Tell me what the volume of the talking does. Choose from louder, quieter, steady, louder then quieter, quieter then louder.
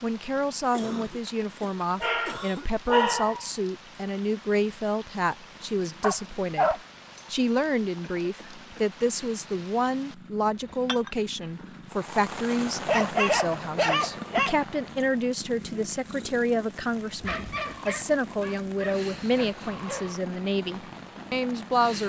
steady.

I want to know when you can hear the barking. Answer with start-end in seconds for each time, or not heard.
2.0-3.5, 6.0-7.2, 12.8-14.6, 17.2-20.2.